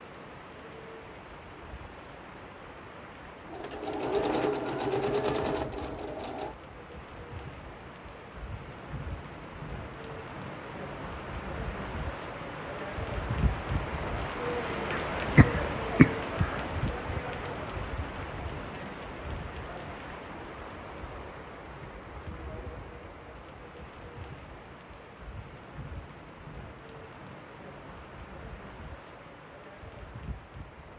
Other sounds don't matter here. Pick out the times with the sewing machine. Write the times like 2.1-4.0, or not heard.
3.5-6.5.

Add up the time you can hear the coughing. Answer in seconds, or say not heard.
2 s.